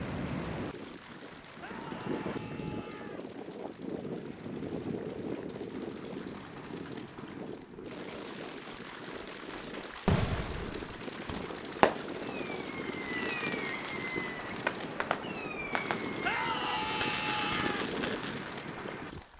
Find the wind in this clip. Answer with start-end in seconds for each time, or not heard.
0.0-19.2.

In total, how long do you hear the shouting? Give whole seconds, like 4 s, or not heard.
3 s.